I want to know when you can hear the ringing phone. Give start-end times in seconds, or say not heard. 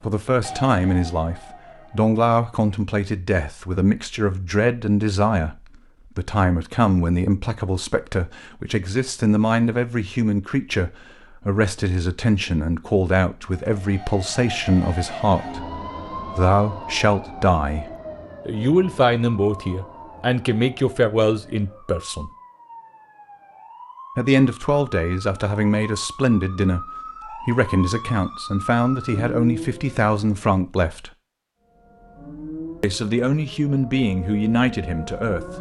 not heard.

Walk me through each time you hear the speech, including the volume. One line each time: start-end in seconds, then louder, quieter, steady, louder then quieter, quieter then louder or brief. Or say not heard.
0.0-22.3 steady
24.1-31.1 steady
32.8-35.5 brief.